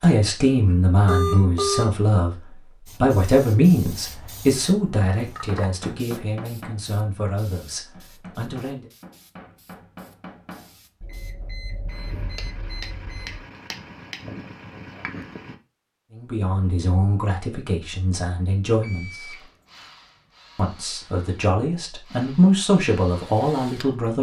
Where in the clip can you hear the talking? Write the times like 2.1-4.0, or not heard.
0.0-8.8, 16.1-19.4, 20.6-24.1.